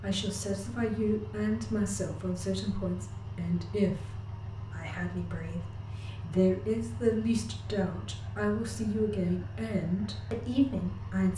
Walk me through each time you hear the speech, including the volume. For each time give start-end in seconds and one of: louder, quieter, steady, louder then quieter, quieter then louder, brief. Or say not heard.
0.0-11.3 steady.